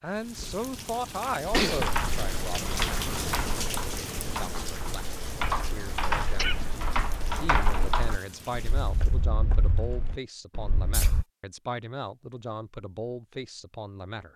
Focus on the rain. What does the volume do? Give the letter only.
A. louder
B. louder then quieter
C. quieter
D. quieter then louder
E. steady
B.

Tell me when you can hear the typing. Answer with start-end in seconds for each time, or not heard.
1.6-11.2.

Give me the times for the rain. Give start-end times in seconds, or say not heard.
0.0-9.2.